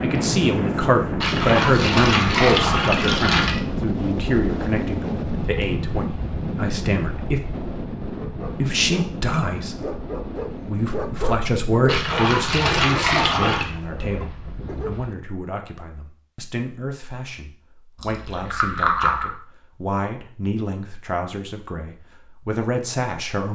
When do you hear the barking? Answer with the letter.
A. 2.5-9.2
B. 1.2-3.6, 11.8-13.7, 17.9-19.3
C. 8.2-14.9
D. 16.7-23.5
C.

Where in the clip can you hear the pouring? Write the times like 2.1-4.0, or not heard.
1.2-3.6, 11.8-13.7, 17.9-19.3.